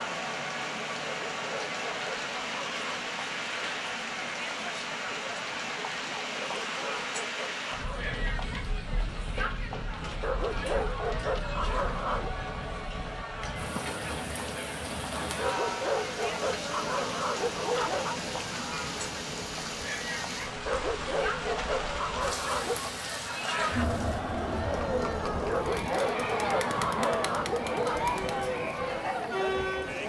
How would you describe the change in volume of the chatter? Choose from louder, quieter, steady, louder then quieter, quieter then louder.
louder.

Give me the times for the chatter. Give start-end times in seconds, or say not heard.
0.0-30.0.